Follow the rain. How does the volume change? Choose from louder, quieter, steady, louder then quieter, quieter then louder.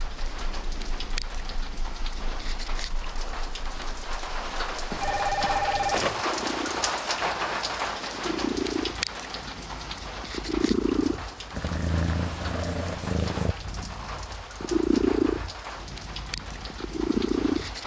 louder then quieter.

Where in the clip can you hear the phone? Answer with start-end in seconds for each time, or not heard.
4.9-6.2.